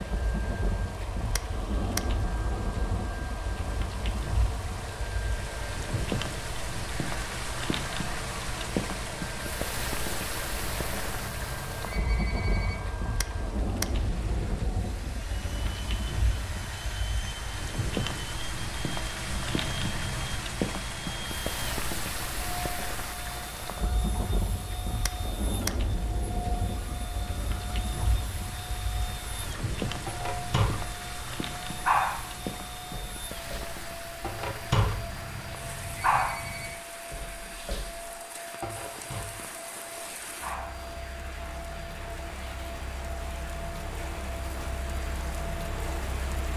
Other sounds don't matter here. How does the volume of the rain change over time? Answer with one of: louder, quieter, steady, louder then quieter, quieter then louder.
quieter.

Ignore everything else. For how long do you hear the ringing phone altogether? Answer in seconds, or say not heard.
5 s.